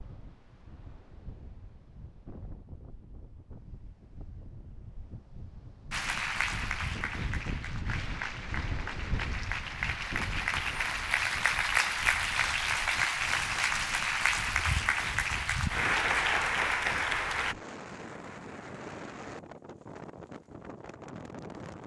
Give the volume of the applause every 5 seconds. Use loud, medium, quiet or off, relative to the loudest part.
off, medium, loud, loud, off.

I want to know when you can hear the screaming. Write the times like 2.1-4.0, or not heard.
not heard.